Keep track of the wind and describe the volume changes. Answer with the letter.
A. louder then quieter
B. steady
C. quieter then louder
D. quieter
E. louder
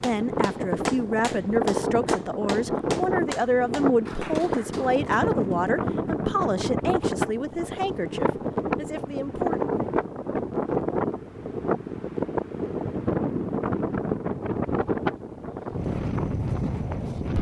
B.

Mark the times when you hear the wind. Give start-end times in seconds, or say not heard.
0.0-17.3.